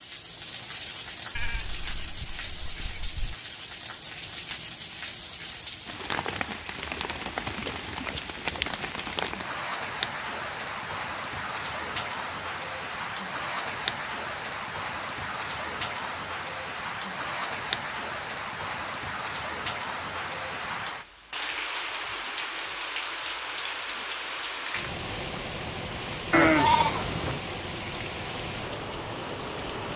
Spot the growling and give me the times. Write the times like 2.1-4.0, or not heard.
not heard.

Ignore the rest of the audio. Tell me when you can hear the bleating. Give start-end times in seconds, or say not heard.
1.4-3.4, 26.3-27.4.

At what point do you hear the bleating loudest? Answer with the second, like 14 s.
27 s.